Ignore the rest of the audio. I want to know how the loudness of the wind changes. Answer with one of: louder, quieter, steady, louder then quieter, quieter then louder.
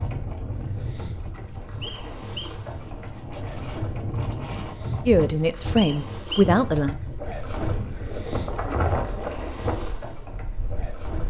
louder.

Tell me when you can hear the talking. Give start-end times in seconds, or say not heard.
5.0-7.0.